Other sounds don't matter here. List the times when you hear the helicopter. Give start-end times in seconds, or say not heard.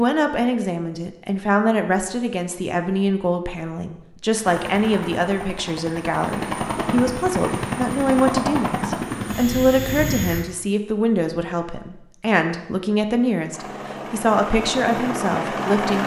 4.4-10.4, 13.5-16.0.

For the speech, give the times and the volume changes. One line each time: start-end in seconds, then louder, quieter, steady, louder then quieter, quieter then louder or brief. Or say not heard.
0.0-16.0 steady.